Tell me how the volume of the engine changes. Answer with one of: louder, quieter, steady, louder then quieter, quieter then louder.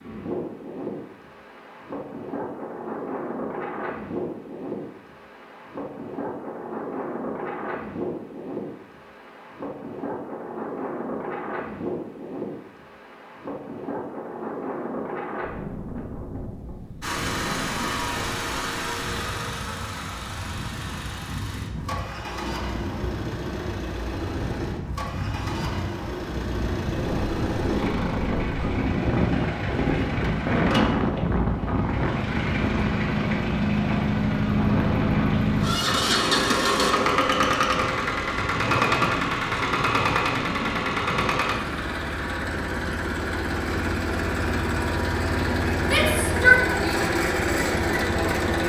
louder.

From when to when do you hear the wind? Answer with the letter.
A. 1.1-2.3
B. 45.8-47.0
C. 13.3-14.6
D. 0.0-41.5
D.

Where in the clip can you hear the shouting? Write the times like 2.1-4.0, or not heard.
45.8-47.0.